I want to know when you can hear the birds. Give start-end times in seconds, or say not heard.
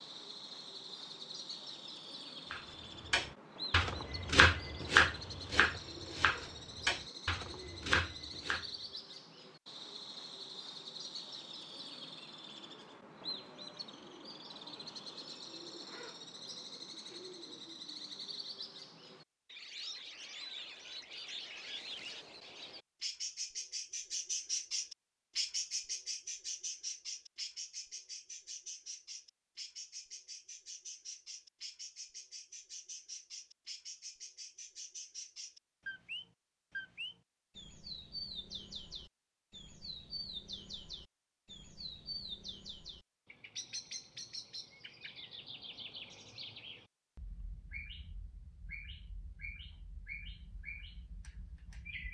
0.0-52.0.